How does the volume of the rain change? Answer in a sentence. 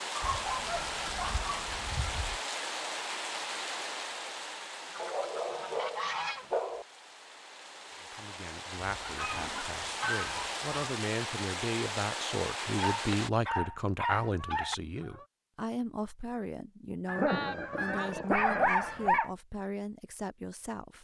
The loudness of the rain goes down, then up.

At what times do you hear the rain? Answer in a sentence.
The rain can be heard from 0.0 to 13.3 s.